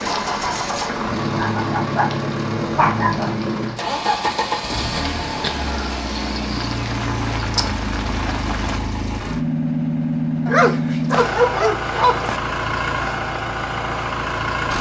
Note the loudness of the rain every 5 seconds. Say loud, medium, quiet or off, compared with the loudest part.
loud, loud, off.